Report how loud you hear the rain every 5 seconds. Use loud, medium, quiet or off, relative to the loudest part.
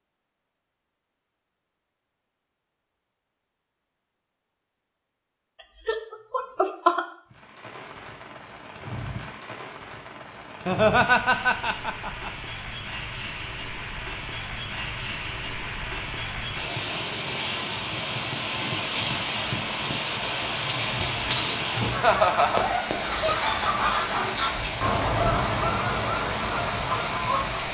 off, medium, medium, loud, loud, loud.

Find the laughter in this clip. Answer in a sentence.
You can hear the laughter from 5.8 to 7.0 s, from 10.7 to 12.3 s and from 21.9 to 22.6 s.